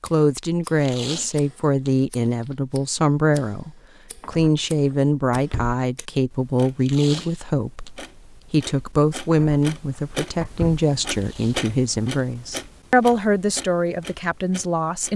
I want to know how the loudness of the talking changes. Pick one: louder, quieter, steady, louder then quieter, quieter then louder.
steady.